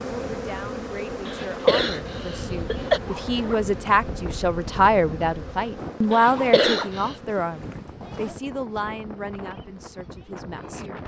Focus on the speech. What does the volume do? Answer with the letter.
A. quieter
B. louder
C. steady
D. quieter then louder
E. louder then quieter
E.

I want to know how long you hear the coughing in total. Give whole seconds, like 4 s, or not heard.
3 s.